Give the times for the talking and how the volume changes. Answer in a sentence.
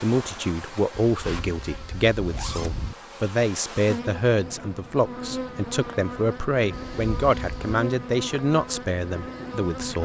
The talking can be heard from 0.0 to 10.0 s, at a steady volume.